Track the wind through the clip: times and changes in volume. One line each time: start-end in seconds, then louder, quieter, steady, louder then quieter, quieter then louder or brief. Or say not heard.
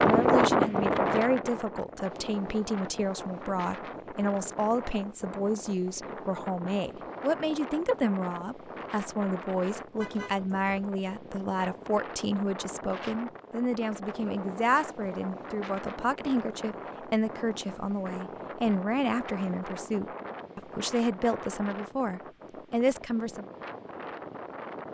0.0-24.8 quieter.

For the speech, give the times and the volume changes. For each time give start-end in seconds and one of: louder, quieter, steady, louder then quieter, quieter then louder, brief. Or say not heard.
0.0-23.4 steady.